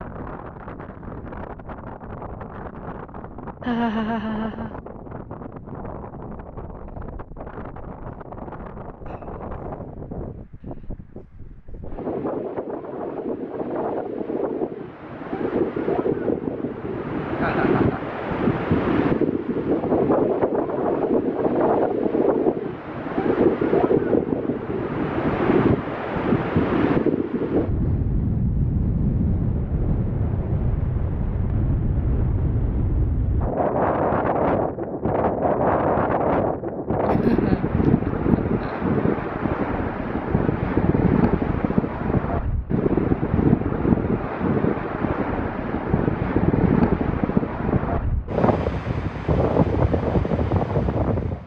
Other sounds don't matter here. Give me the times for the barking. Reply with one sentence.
The barking can't be heard in this clip.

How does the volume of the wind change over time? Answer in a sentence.
The loudness of the wind goes up.